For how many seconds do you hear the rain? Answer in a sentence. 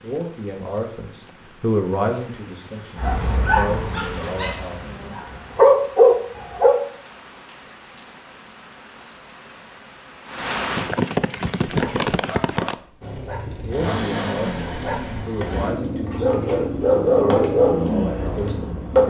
The rain can be heard for 13 seconds in total.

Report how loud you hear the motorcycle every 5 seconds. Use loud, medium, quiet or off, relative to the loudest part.
off, off, loud, loud.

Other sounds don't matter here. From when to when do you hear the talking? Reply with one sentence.
You can hear the talking from 0.0 to 4.8 s and from 13.7 to 19.0 s.